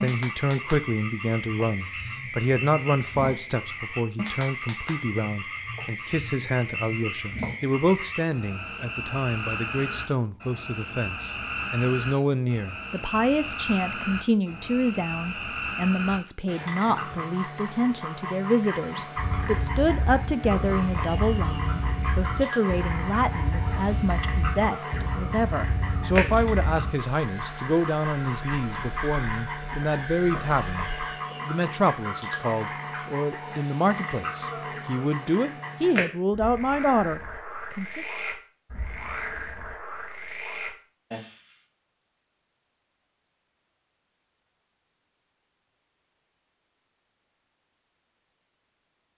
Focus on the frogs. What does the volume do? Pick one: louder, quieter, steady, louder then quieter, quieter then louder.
steady.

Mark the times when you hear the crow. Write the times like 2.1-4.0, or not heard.
19.1-31.2.